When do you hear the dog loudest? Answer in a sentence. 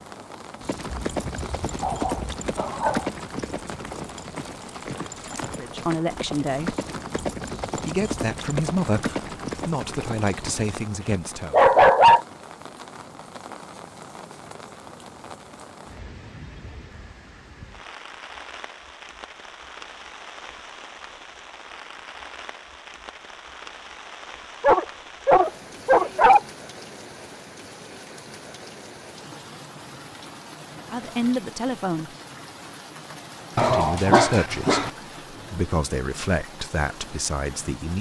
The loudest moment of the dog is at 12 seconds.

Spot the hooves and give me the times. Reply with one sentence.
You can hear the hooves from 0.6 to 10.8 s.